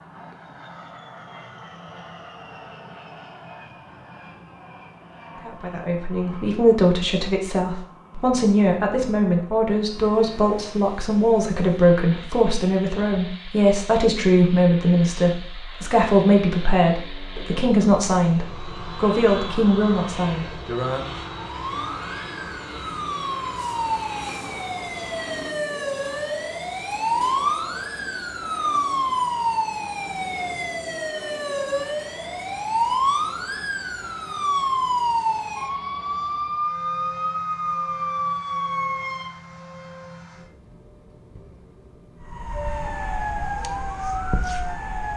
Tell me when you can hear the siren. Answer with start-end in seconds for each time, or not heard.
21.4-39.4, 42.2-45.1.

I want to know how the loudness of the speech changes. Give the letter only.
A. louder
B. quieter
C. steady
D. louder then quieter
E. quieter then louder
C.